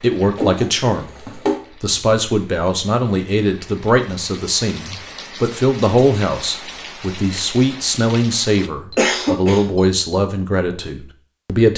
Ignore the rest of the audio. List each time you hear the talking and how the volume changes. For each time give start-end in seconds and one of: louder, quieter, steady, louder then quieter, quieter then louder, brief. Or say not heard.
0.0-11.7 steady.